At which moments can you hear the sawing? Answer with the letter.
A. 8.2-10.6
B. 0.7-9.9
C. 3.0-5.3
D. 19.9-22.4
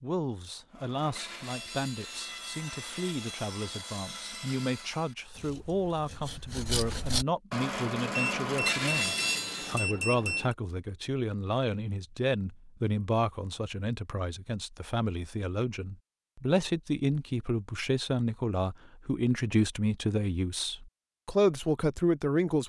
B.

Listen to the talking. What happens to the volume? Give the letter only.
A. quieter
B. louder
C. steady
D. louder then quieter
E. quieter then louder
B.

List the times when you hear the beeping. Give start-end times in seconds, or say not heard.
8.2-10.6.